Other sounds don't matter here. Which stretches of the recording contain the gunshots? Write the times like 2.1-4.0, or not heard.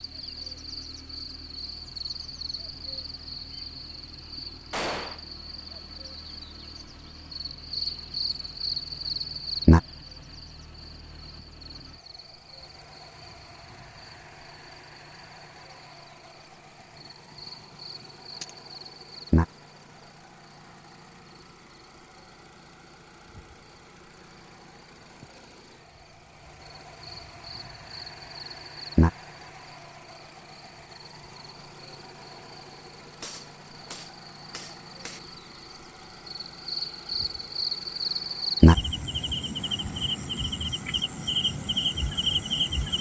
4.7-5.2, 16.9-18.6, 33.2-35.2.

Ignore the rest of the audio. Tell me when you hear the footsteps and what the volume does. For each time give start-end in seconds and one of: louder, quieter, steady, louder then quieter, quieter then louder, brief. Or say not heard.
not heard.